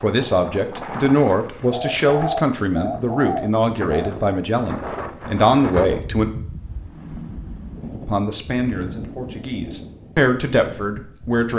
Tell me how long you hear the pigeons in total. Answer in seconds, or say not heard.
3 s.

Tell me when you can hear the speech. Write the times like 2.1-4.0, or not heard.
0.0-6.3, 8.1-11.5.